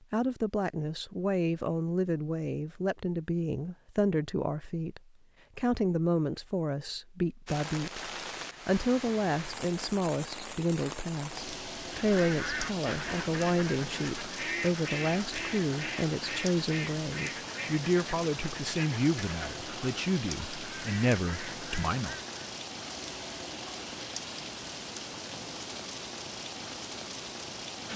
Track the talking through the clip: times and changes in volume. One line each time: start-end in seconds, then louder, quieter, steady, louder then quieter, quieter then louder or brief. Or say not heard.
0.1-22.2 steady.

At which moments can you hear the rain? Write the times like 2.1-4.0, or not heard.
7.5-27.9.